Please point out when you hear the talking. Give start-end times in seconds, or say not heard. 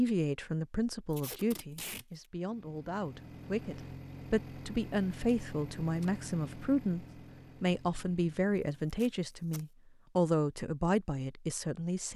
0.0-12.1.